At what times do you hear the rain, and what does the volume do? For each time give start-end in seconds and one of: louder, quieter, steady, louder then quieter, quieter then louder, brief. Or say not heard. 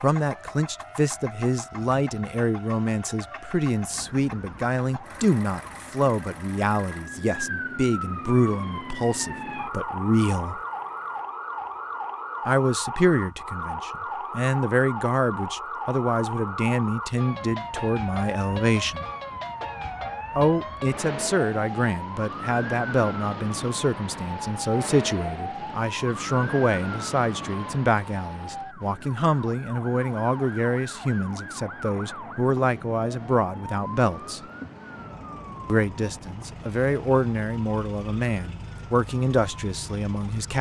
not heard.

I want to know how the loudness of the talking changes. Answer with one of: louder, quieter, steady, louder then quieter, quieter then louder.
steady.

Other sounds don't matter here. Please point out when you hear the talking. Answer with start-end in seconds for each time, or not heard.
0.0-10.6, 12.4-19.1, 20.4-34.4, 35.6-40.5.